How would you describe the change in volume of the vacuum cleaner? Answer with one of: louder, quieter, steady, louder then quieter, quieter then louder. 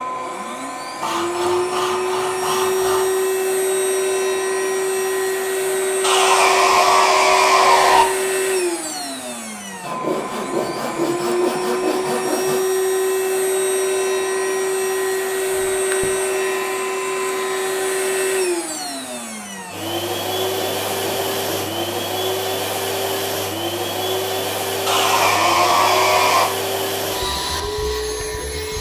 steady.